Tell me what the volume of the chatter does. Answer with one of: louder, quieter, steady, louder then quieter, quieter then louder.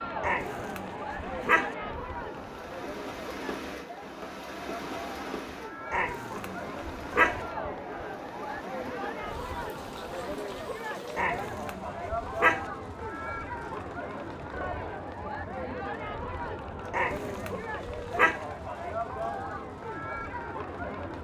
steady.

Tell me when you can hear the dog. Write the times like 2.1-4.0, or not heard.
0.2-1.7, 5.9-7.3, 11.2-12.6, 16.9-18.4.